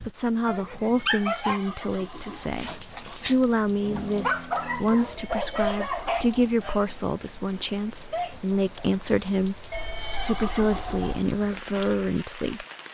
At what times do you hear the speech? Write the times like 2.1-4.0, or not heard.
0.0-12.7.